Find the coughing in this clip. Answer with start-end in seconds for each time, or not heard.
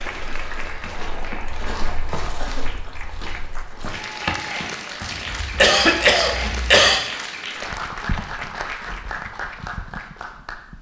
1.5-2.9, 5.5-7.0.